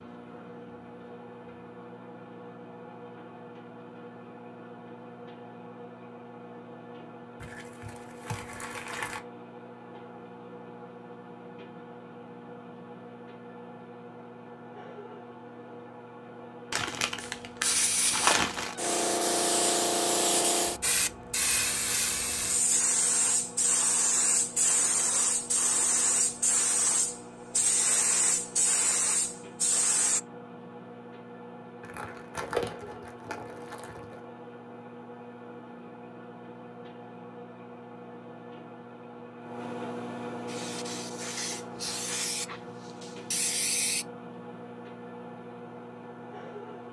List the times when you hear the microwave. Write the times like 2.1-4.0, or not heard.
0.0-46.8.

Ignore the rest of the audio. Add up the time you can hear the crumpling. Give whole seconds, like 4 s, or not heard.
6 s.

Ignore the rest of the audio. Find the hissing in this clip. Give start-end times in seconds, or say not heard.
17.2-30.2, 40.5-44.0.